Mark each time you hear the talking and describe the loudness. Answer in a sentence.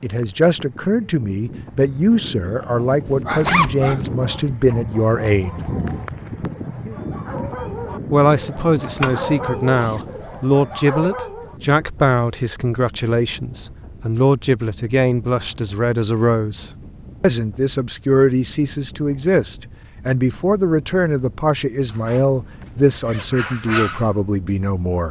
You can hear the talking from 0.0 to 5.5 s, at a steady volume; and from 8.1 to 25.0 s, at a steady volume.